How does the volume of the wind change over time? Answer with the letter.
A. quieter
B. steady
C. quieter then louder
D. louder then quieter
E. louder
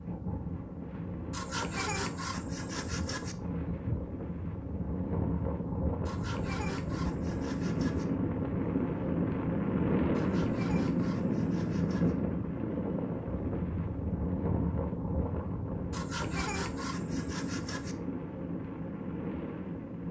D.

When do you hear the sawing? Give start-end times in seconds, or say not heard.
1.3-3.4, 6.0-8.1, 10.1-12.2, 15.9-17.9.